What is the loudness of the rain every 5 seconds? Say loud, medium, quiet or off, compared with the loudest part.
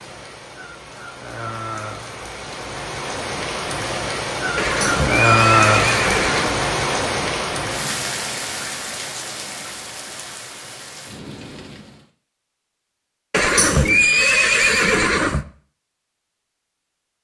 medium, loud, quiet, off.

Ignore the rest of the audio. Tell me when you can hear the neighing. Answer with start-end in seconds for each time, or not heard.
4.5-6.5, 13.3-15.4.